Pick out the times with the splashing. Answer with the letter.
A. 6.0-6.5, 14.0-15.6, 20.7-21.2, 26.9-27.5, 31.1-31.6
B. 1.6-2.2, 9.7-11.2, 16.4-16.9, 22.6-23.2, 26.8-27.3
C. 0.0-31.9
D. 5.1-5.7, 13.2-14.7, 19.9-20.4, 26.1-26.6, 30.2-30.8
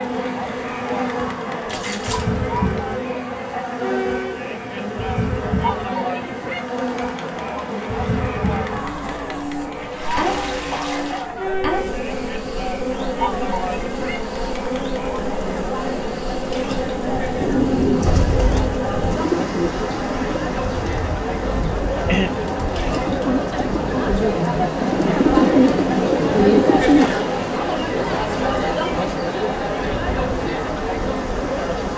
B.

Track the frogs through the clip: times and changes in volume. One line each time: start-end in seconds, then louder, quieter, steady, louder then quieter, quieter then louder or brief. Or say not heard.
not heard.